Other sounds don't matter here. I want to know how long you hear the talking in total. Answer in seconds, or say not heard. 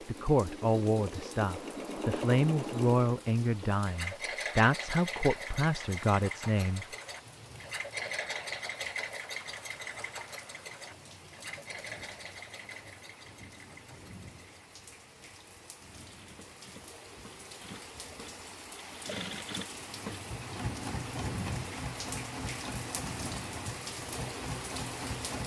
7 s.